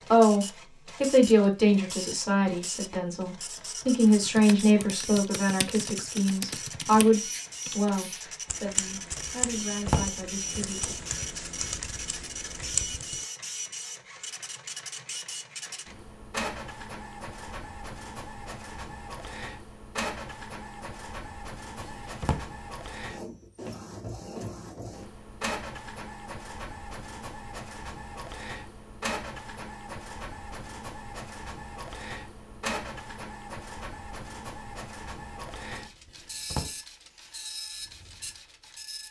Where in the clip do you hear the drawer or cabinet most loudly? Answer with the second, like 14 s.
10 s.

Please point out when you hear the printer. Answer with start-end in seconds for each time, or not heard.
0.0-39.0.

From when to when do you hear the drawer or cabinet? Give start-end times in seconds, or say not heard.
9.4-10.1, 21.8-22.4, 36.0-36.8.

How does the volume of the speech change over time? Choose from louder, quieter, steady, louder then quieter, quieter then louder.
quieter.